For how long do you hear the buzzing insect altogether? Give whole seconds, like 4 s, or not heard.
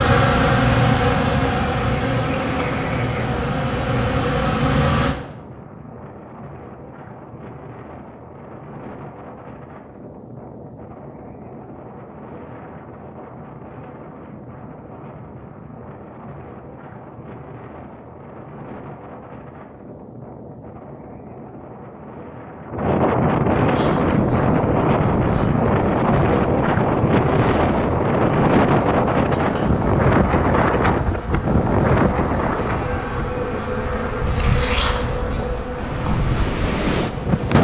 19 s.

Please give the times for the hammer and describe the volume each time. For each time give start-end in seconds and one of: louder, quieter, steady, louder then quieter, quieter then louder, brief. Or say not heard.
not heard.